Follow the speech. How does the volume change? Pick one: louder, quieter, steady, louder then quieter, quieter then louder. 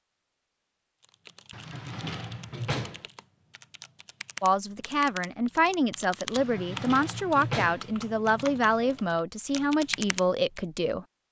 steady.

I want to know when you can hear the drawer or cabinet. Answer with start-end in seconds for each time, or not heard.
1.5-3.0, 6.3-7.9.